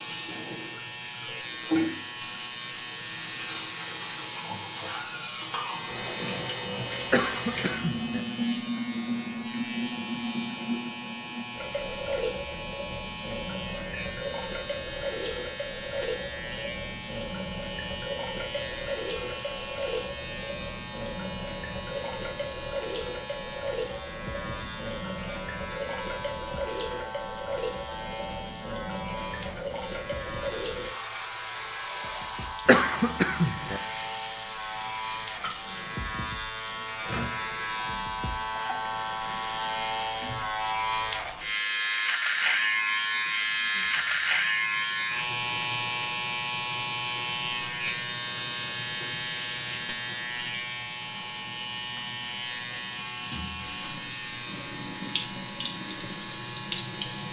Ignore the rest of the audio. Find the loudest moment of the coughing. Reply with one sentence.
The loudest moment of the coughing is at 33 seconds.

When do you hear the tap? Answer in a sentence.
The tap can be heard from 0.0 to 57.2 s.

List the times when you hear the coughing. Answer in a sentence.
The coughing can be heard from 7.1 to 8.2 s and from 32.6 to 33.8 s.